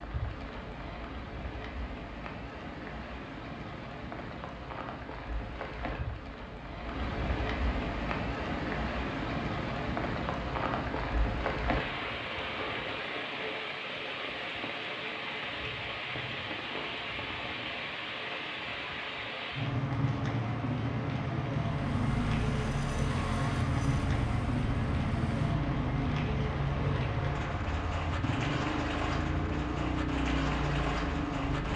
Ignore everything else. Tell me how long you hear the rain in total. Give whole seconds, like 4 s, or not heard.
32 s.